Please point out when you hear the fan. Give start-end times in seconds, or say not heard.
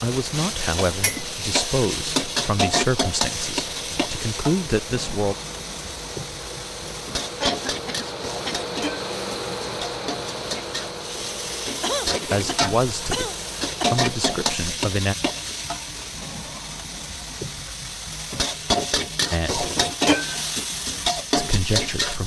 0.1-14.4.